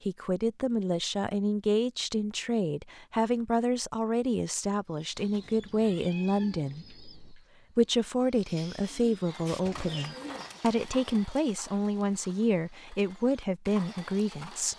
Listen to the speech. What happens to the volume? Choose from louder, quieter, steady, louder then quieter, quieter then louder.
steady.